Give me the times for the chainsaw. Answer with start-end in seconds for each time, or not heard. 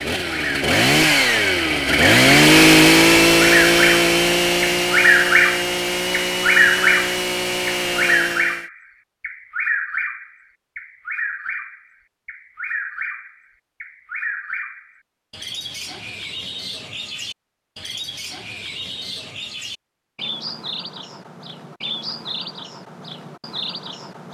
0.0-8.7.